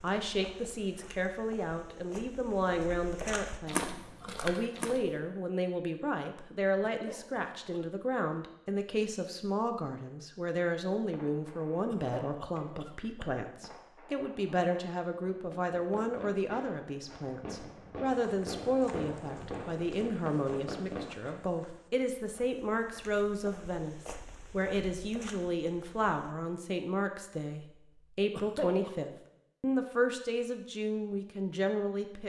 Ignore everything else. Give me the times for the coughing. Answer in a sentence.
You can hear the coughing from 6.8 to 7.8 s, from 11.8 to 13.7 s and from 28.3 to 28.9 s.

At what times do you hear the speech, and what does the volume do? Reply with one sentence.
The speech can be heard from 0.0 to 32.2 s, at a steady volume.